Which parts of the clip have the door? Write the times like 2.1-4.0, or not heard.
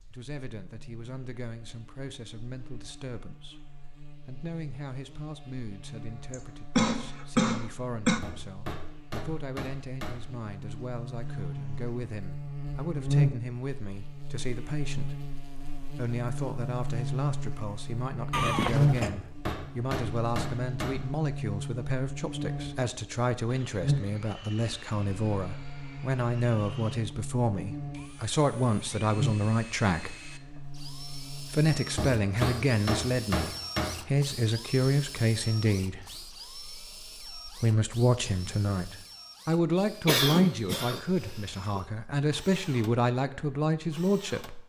not heard.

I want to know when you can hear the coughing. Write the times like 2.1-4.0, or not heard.
6.3-8.2, 18.3-19.1, 40.0-41.8.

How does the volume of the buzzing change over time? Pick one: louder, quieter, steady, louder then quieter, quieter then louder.
louder then quieter.